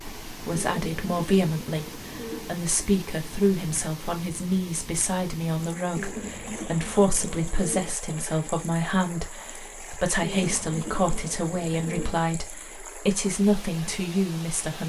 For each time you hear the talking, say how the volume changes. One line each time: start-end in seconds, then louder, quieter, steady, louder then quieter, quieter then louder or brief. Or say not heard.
0.2-14.8 steady.